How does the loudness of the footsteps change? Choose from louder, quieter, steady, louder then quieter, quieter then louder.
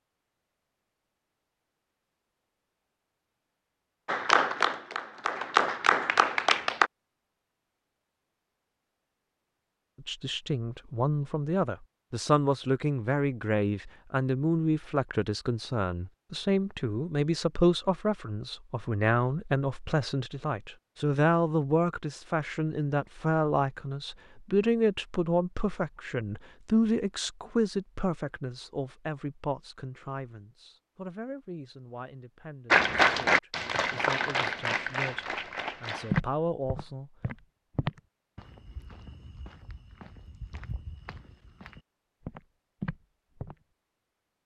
quieter then louder.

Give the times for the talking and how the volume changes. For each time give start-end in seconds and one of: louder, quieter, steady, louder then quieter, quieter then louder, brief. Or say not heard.
10.0-37.1 quieter.